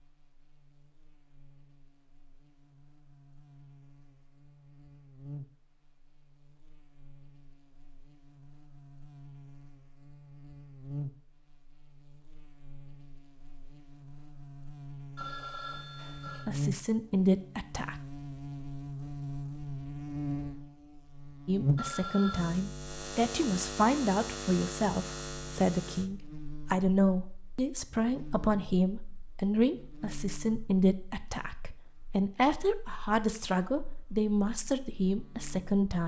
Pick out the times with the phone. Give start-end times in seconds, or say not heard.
15.2-16.4, 21.8-22.4.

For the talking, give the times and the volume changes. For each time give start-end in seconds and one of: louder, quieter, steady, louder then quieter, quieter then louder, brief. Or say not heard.
16.4-18.0 brief
21.4-36.0 steady.